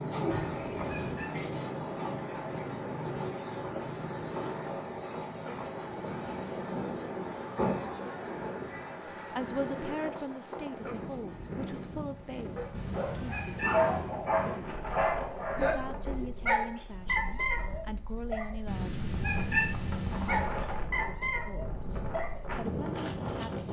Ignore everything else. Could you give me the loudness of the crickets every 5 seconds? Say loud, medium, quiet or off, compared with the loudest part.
loud, loud, quiet, quiet, off.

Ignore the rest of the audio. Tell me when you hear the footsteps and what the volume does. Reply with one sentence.
The footsteps can't be heard in this clip.